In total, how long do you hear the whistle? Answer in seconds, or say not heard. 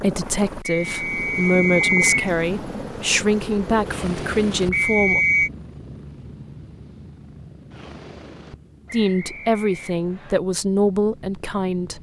4 s.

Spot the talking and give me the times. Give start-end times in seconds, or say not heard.
0.0-5.2, 8.9-11.9.